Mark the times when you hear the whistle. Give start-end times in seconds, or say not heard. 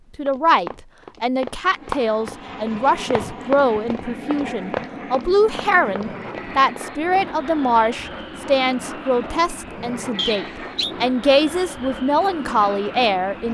10.2-10.9.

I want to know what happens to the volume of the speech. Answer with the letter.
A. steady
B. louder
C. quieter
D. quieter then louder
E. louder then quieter
A.